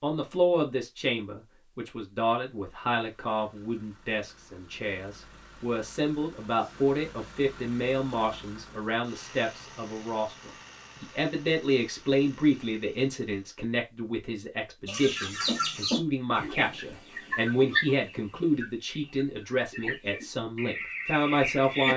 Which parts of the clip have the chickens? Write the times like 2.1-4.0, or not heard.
14.8-21.9.